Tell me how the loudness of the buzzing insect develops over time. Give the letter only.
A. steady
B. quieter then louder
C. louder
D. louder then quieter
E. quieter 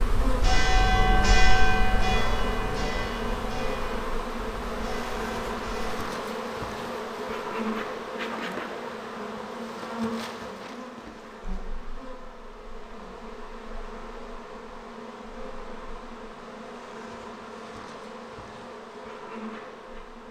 E.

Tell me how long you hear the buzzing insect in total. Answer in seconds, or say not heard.
20 s.